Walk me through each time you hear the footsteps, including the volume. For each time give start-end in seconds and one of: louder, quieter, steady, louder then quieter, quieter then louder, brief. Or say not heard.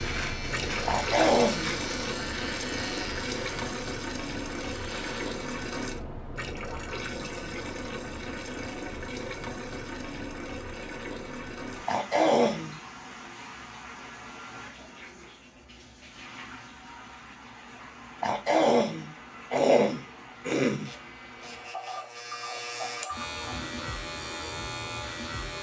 not heard.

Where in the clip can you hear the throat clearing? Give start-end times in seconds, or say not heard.
0.8-1.8, 11.8-12.8, 18.2-20.9.